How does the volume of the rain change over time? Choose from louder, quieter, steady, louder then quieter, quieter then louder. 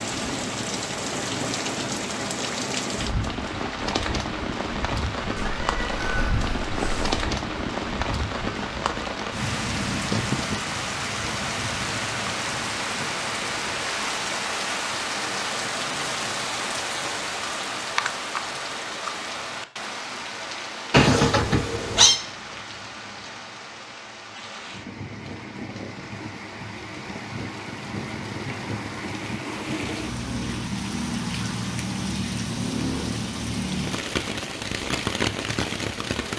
quieter then louder.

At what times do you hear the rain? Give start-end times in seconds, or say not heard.
0.0-36.3.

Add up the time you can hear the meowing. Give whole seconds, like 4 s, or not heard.
3 s.